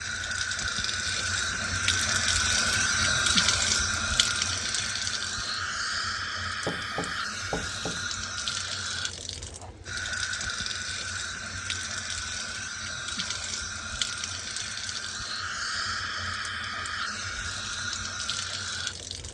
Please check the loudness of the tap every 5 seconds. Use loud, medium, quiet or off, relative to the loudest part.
loud, medium, medium, medium.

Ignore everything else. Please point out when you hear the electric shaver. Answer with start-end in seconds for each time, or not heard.
not heard.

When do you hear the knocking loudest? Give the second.
7 s.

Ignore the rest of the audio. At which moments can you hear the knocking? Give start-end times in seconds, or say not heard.
6.7-8.1.